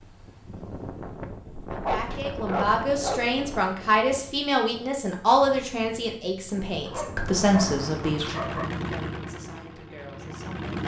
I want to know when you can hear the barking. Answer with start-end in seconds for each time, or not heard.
1.8-3.3, 6.8-8.7.